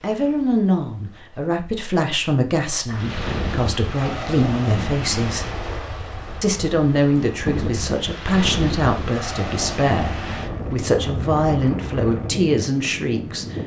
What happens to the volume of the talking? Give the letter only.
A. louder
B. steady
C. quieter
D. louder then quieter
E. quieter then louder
B.